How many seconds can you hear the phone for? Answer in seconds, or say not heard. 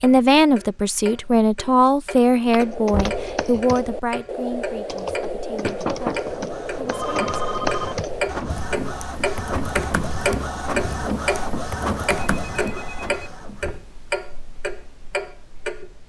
3 s.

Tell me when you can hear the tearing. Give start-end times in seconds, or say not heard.
not heard.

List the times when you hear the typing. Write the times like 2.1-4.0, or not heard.
2.5-12.7.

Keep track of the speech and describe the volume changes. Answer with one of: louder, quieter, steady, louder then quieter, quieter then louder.
quieter.